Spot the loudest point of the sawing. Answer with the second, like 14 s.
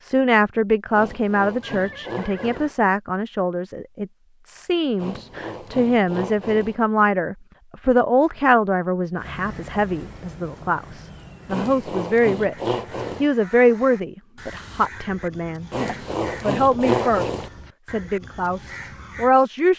17 s.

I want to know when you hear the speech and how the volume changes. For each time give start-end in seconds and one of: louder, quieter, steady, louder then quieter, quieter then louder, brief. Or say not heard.
0.0-19.7 steady.